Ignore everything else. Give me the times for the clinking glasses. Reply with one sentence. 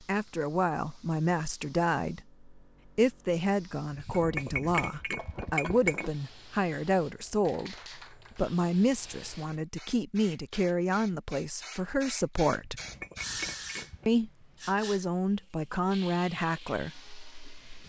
You can hear the clinking glasses from 3.9 to 6.1 s and from 12.6 to 14.1 s.